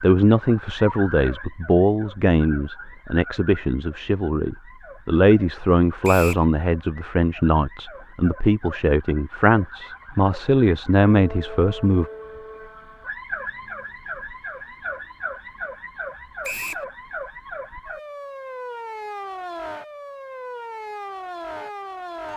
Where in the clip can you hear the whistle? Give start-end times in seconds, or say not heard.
6.0-6.5, 16.4-16.9.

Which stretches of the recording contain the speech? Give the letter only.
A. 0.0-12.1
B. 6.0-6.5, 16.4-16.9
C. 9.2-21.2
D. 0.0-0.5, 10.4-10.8
A.